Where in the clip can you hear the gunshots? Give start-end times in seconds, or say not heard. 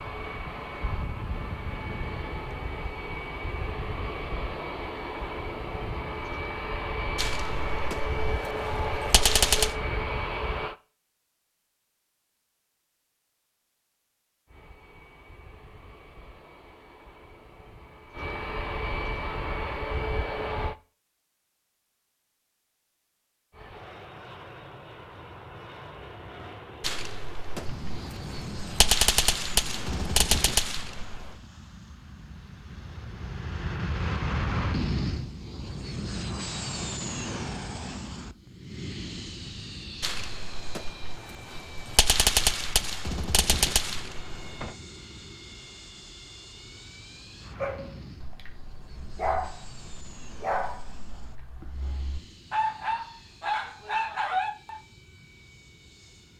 7.2-9.8, 26.8-31.4, 40.0-44.8.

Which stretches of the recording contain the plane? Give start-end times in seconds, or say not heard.
0.0-10.8, 14.4-20.8, 23.5-56.3.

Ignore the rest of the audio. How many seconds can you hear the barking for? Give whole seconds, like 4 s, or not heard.
7 s.